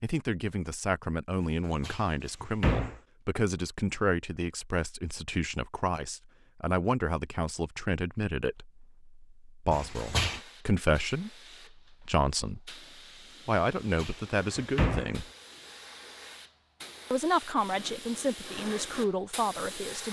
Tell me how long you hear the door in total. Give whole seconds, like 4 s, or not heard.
3 s.